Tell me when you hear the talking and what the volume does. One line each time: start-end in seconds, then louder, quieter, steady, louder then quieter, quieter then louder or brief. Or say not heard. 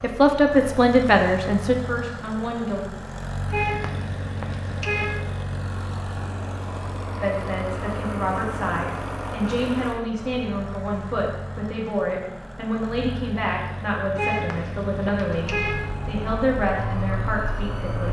0.0-2.9 brief
7.2-18.0 steady.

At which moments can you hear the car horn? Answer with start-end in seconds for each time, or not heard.
3.5-5.2, 14.2-15.8.